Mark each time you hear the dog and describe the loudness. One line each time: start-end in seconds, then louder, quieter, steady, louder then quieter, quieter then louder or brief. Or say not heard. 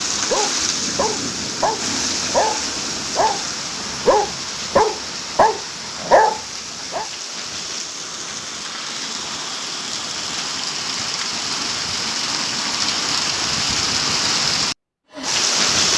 0.2-7.0 louder.